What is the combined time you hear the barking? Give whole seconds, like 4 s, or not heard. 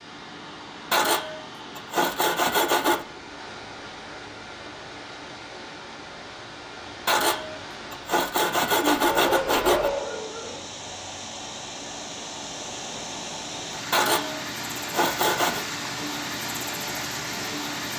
2 s.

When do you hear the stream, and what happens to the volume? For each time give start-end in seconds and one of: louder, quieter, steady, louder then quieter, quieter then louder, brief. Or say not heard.
0.0-17.9 louder.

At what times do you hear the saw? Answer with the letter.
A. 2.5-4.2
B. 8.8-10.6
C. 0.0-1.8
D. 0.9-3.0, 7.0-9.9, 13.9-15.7
D.